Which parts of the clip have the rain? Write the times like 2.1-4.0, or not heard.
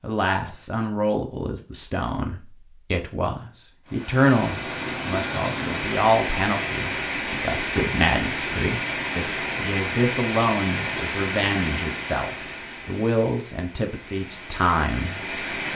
3.9-15.7.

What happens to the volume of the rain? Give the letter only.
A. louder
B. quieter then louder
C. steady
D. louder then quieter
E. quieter
E.